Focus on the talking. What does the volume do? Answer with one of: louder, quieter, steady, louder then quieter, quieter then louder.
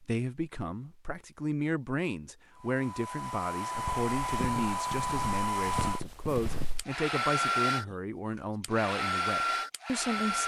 steady.